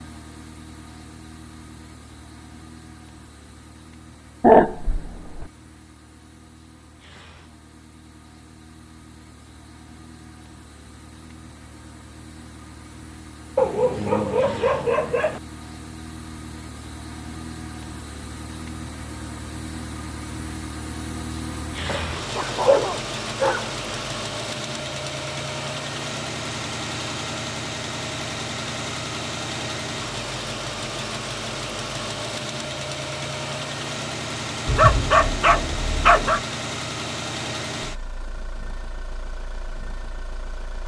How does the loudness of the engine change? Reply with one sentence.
The volume of the engine goes up.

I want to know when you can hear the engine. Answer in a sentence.
You can hear the engine from 0.0 to 40.8 s.